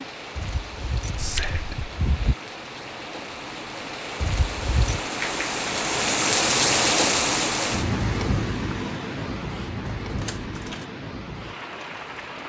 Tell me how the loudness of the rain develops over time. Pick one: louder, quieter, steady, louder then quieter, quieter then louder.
louder then quieter.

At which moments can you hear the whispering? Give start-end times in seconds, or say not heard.
1.1-1.9.